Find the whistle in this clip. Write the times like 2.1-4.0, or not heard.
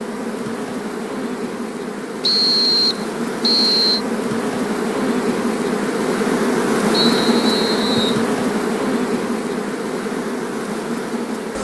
2.2-4.0, 6.9-8.2.